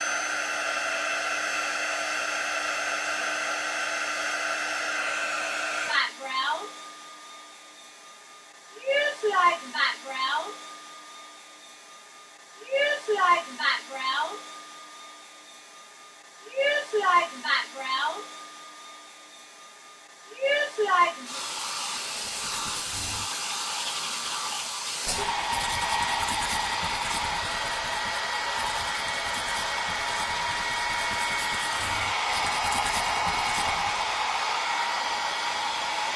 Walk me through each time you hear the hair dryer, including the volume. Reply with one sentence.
You can hear the hair dryer from 0.0 to 36.1 s, at a steady volume.